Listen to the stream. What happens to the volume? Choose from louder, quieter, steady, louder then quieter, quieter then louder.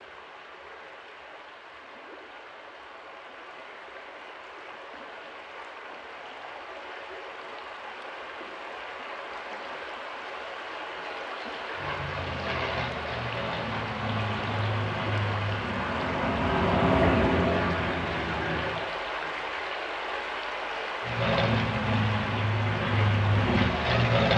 louder.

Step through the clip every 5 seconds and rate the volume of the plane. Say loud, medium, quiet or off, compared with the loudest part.
off, off, medium, loud, loud.